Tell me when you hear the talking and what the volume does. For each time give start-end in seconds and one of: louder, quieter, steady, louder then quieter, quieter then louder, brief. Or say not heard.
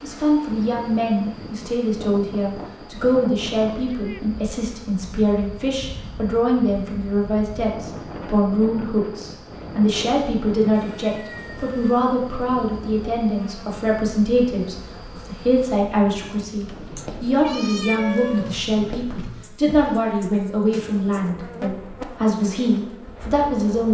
0.0-23.8 steady.